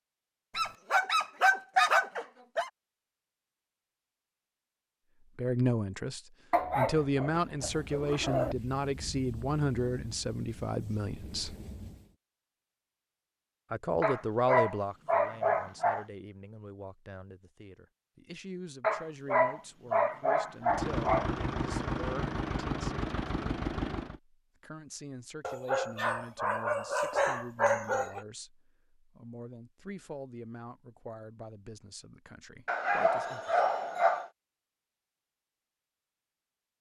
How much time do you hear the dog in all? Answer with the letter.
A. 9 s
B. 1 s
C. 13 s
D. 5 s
C.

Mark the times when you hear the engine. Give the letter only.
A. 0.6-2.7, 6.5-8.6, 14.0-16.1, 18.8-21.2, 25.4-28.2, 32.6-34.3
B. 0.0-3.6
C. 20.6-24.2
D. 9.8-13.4
C.